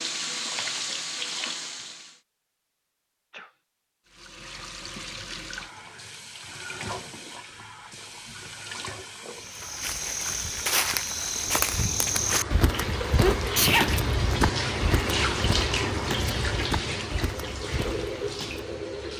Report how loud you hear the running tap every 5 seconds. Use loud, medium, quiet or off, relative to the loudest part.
loud, medium, loud, loud.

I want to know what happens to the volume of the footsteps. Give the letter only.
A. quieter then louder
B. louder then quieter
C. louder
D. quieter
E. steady
D.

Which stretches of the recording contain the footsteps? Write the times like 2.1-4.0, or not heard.
9.3-18.6.